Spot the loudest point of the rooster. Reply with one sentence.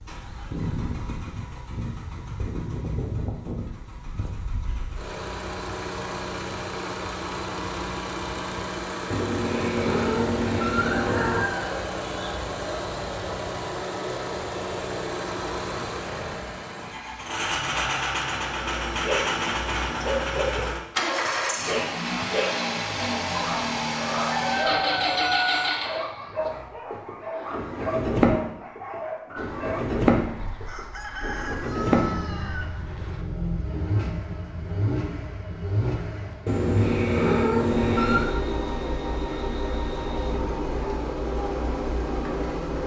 The loudest moment of the rooster is at 25 seconds.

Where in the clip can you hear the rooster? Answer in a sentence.
The rooster can be heard from 11.0 to 12.8 s, from 24.1 to 25.7 s and from 29.4 to 33.2 s.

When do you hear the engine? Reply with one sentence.
You can hear the engine from 0.0 to 42.8 s.